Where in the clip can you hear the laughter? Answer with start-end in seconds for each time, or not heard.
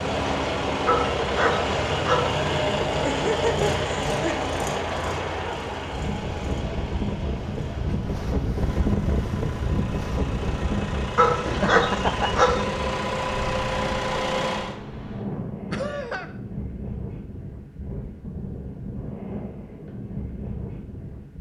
3.0-4.5, 11.4-12.7, 15.7-16.2.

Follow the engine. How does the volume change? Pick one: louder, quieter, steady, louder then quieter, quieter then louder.
quieter then louder.